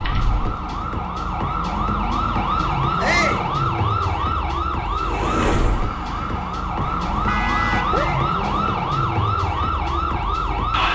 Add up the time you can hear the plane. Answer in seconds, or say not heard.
2 s.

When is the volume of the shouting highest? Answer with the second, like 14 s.
3 s.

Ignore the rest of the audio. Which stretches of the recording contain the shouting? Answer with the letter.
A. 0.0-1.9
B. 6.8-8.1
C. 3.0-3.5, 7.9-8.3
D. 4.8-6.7
C.